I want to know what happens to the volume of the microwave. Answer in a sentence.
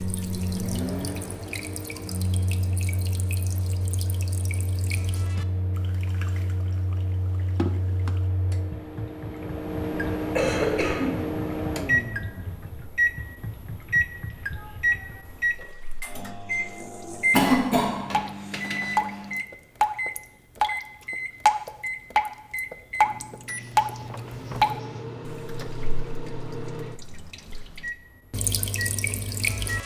The volume of the microwave goes up, then down.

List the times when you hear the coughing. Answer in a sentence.
You can hear the coughing from 10.2 to 11.2 s and from 17.3 to 18.2 s.